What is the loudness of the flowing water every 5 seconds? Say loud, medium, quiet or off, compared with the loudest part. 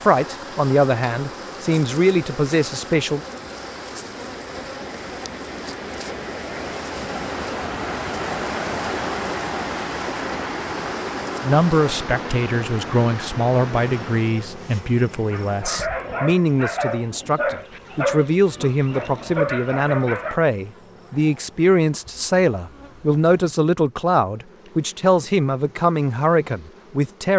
medium, loud, loud, off, off, off.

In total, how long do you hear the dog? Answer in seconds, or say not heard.
5 s.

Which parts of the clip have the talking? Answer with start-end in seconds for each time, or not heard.
0.0-3.2, 11.4-27.3.